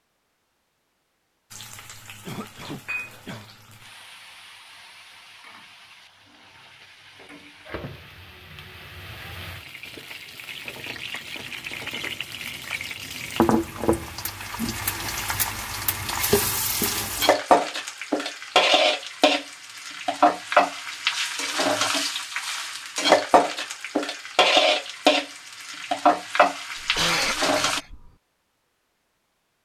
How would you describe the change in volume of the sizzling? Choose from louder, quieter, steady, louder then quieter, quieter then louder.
louder.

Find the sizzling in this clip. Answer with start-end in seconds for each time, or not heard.
1.5-27.8.